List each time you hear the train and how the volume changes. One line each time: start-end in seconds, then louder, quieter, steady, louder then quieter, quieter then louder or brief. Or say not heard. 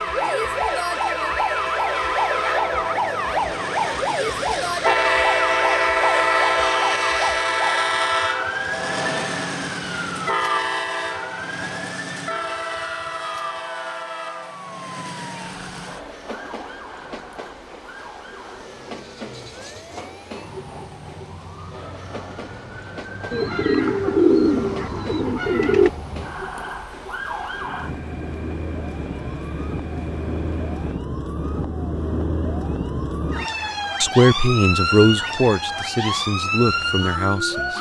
0.0-31.0 quieter.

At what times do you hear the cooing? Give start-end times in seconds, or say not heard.
23.3-25.9.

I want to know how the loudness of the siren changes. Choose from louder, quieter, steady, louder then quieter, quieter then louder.
quieter then louder.